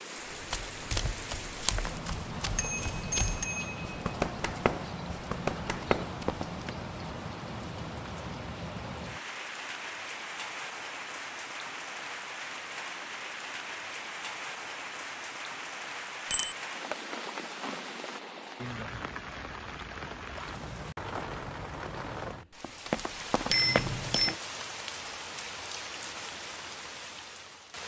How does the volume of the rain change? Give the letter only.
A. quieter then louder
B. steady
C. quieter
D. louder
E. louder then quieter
B.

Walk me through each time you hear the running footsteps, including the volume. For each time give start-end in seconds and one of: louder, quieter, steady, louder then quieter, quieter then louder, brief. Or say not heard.
0.2-6.7 quieter then louder
22.6-24.3 brief.